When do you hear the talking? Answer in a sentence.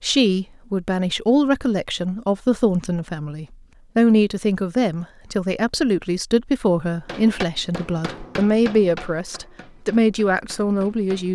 You can hear the talking from 0.0 to 11.3 s.